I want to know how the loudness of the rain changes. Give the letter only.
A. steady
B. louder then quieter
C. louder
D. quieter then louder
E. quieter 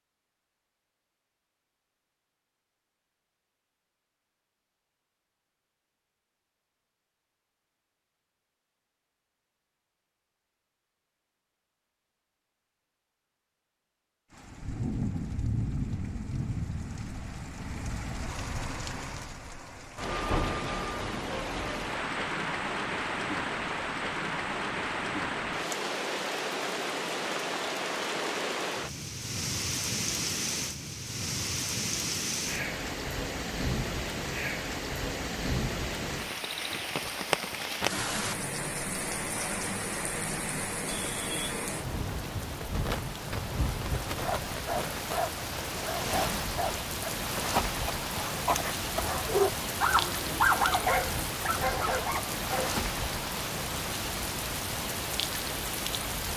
A.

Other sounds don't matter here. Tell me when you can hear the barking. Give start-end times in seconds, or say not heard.
44.2-52.8.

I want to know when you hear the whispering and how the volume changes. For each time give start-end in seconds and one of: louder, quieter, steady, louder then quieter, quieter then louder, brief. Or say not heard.
not heard.